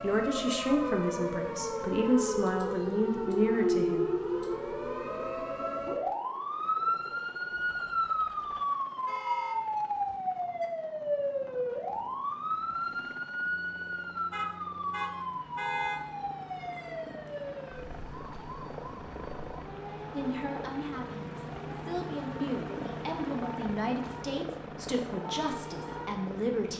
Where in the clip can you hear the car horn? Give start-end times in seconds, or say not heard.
7.5-9.6, 14.3-16.0.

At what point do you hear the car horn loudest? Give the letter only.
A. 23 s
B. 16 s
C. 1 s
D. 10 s
B.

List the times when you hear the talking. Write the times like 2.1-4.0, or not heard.
0.0-4.1, 20.1-26.7.